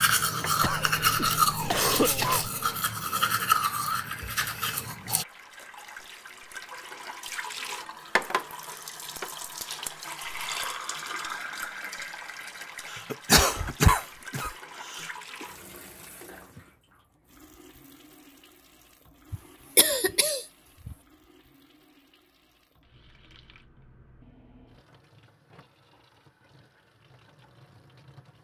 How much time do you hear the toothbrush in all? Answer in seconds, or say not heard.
5 s.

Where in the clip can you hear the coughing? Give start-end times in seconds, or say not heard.
0.6-2.5, 12.9-15.4, 19.3-20.9.